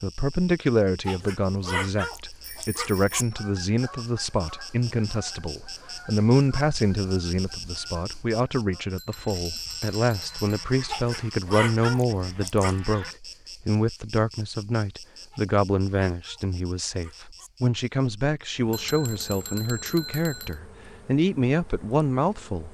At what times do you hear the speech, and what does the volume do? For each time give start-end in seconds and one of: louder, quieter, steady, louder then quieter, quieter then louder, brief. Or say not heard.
0.0-22.6 steady.